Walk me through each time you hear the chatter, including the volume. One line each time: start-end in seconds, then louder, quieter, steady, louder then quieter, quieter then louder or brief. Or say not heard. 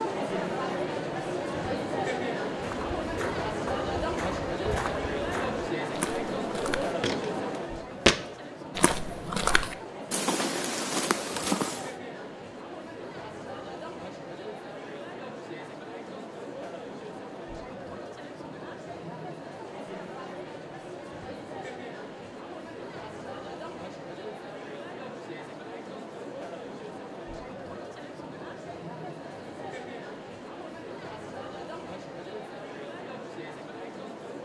0.0-34.3 quieter.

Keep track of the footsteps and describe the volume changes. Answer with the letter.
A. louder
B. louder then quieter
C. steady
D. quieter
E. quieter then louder
A.